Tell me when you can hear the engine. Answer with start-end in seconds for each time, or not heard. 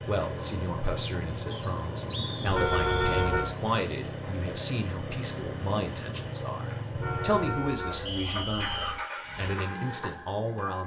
0.0-10.8.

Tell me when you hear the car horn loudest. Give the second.
3 s.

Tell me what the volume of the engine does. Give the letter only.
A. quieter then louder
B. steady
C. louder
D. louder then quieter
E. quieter
B.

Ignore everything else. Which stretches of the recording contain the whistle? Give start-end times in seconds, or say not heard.
1.5-3.2, 8.1-9.0.